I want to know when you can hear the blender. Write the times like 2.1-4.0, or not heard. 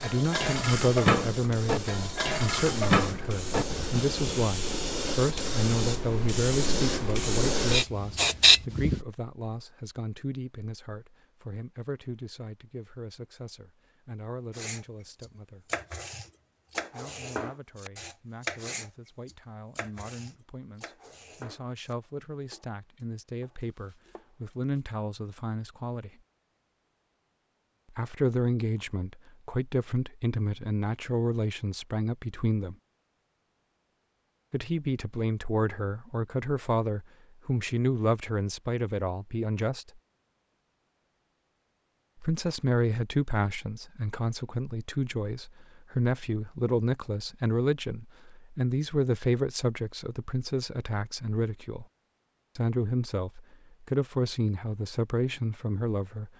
not heard.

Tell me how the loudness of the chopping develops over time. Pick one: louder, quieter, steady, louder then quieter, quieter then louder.
quieter.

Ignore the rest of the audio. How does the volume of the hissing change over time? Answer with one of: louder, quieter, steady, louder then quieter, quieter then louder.
louder.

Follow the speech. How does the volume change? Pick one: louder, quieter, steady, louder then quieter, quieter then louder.
quieter then louder.